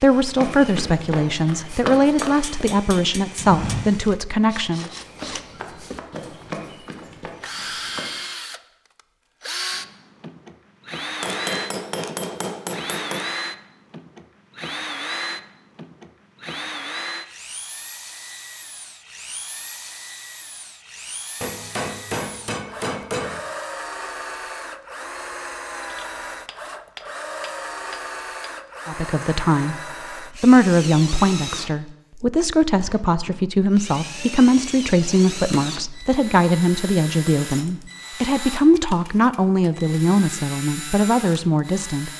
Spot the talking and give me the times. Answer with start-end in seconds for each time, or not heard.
0.0-4.9, 28.9-42.1.